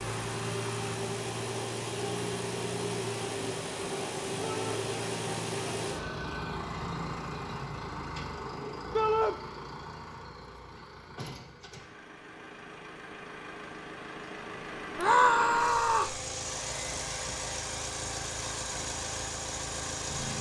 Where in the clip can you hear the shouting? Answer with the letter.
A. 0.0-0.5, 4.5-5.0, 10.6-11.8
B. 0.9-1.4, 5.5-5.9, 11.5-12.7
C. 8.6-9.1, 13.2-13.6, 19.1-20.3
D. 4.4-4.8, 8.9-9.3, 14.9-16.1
D.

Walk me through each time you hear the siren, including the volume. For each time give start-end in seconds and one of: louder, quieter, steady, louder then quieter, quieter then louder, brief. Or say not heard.
not heard.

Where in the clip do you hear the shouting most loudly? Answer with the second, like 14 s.
15 s.